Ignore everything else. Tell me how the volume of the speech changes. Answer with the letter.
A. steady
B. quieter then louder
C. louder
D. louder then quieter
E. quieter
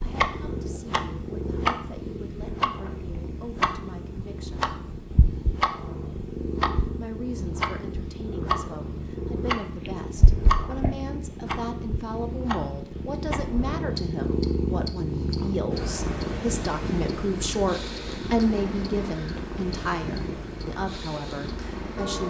C.